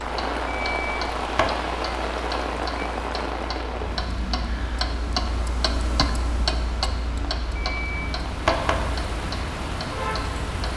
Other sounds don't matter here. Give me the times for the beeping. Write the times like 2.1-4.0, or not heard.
0.5-1.6, 7.5-8.8.